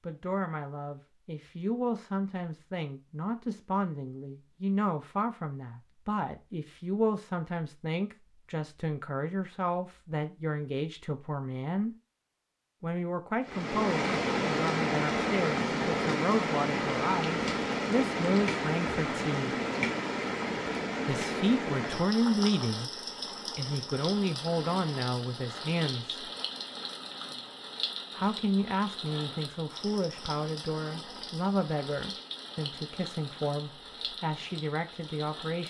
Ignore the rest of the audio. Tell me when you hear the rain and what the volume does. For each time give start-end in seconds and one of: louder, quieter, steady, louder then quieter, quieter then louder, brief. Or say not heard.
13.4-35.6 quieter.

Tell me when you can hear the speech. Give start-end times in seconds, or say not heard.
0.0-11.9, 12.8-19.6, 21.1-22.9, 23.6-26.3, 28.1-35.6.